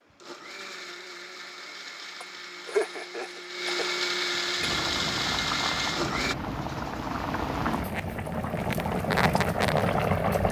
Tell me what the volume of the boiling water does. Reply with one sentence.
The volume of the boiling water goes up.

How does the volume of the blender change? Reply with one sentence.
The volume of the blender goes up.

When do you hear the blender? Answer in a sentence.
You can hear the blender from 0.0 to 6.3 s.